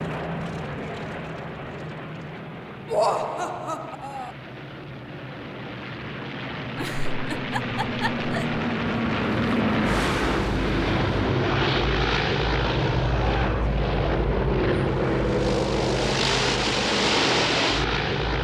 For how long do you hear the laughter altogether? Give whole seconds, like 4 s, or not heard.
4 s.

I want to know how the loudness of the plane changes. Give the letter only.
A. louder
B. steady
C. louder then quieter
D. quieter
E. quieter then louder
A.